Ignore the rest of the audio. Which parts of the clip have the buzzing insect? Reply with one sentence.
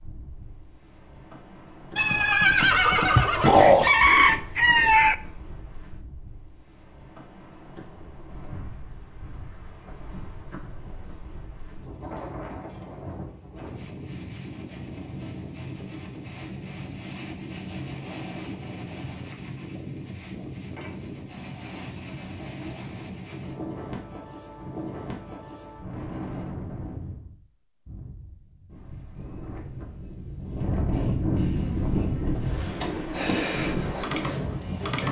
The buzzing insect can be heard from 31.5 to 35.0 s.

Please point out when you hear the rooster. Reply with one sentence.
You can hear the rooster from 3.1 to 5.2 s.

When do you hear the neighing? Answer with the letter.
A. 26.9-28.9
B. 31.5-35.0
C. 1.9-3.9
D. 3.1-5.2
C.